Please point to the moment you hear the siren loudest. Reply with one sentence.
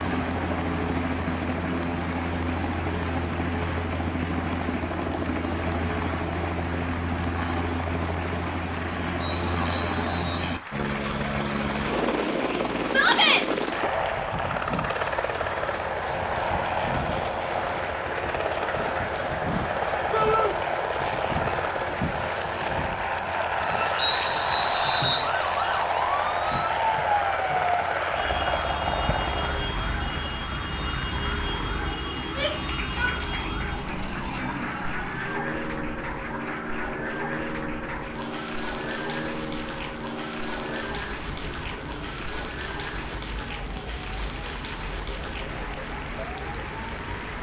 The volume of the siren peaks at 27 seconds.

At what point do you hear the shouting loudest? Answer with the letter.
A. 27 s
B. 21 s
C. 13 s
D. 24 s
C.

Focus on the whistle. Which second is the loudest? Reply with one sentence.
The loudest moment of the whistle is at 24 seconds.